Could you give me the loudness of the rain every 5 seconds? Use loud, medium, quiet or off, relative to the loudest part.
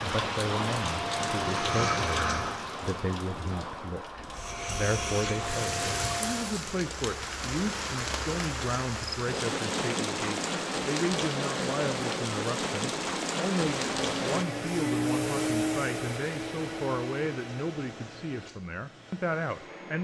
loud, loud, loud, off.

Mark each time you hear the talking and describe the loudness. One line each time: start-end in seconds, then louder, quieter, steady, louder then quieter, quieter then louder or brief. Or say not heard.
0.0-19.9 steady.